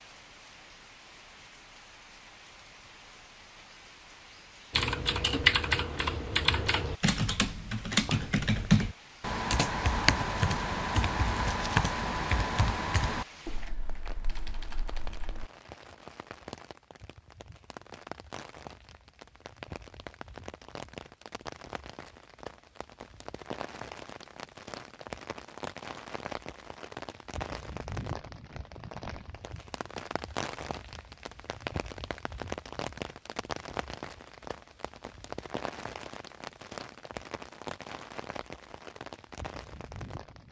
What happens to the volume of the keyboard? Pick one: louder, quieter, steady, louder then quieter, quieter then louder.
quieter.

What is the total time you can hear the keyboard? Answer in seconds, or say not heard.
11 s.